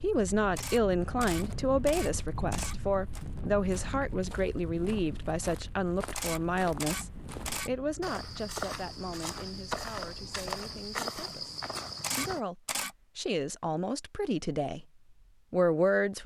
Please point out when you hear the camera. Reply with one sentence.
You can hear the camera from 0.6 to 3.2 s, from 6.2 to 7.7 s and from 12.0 to 12.9 s.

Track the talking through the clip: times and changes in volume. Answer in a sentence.
The talking can be heard from 0.0 to 14.8 s, getting quieter then louder; and briefly from 15.5 to 16.2 s.